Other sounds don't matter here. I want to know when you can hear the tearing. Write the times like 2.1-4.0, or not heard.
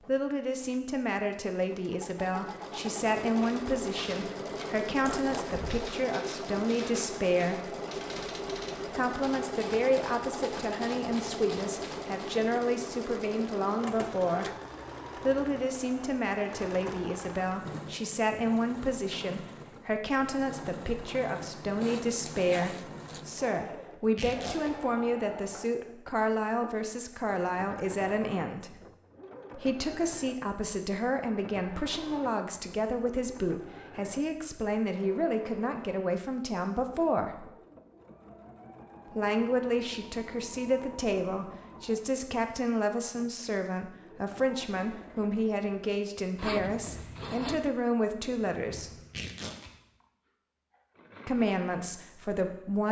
24.1-24.8, 49.0-49.7.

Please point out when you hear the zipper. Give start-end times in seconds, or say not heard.
5.0-5.8, 21.8-23.2, 46.4-47.7.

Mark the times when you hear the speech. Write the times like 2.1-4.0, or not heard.
0.0-7.8, 8.8-14.4, 15.2-28.8, 29.5-37.5, 39.0-49.0, 51.2-52.8.